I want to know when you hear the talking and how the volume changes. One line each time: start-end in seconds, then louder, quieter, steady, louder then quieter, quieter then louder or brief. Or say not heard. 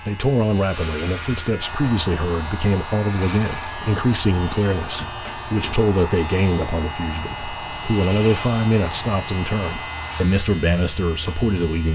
0.1-11.8 steady.